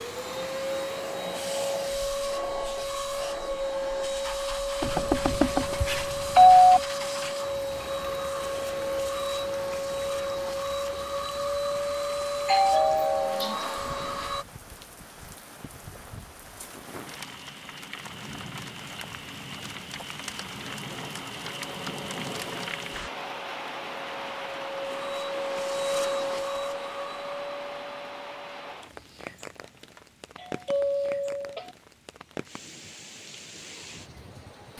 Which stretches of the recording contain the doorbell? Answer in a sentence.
You can hear the doorbell from 4.8 to 6.8 s, from 12.4 to 13.7 s and from 29.9 to 31.8 s.